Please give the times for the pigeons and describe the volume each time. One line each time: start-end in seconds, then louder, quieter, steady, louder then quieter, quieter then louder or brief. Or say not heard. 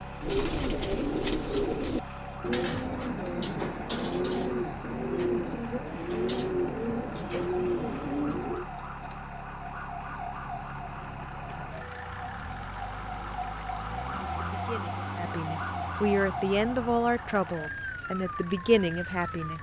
0.2-8.7 steady.